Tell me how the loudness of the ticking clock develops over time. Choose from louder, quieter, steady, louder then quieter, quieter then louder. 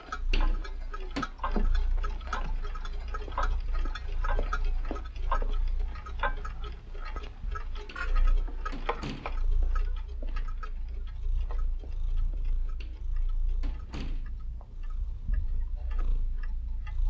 quieter.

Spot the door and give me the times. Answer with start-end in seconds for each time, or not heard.
0.3-1.2, 7.8-9.4, 12.8-14.3.